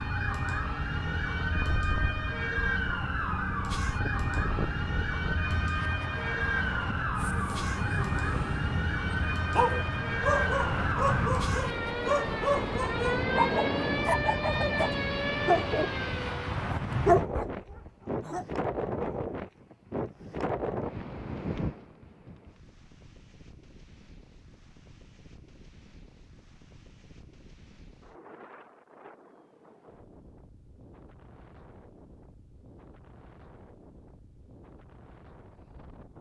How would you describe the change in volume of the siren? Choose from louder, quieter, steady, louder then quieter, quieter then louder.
steady.